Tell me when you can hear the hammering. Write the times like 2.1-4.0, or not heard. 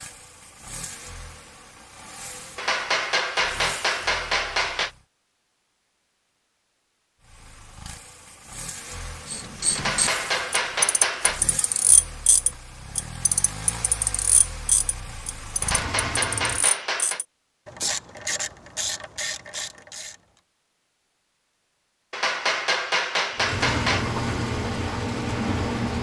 2.5-4.9, 9.8-11.4, 15.6-17.2, 22.1-24.1.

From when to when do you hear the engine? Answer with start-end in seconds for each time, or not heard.
0.0-5.0, 7.2-16.7, 23.4-25.9.